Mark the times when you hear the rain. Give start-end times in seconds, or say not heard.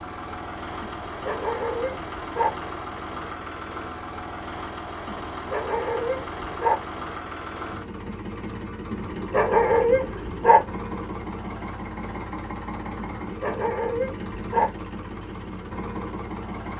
not heard.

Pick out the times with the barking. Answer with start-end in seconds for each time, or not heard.
1.1-2.5, 5.3-6.8, 8.9-10.7, 13.2-14.7.